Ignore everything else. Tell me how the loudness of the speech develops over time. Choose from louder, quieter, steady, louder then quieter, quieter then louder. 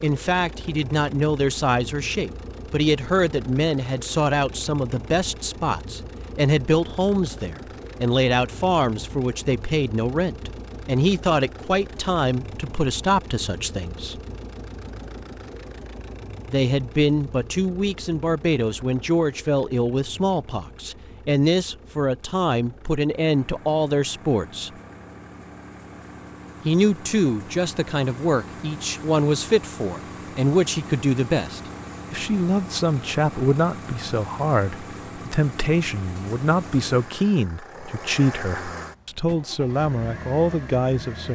steady.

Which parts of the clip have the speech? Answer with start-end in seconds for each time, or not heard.
0.0-14.2, 16.4-24.7, 26.6-41.3.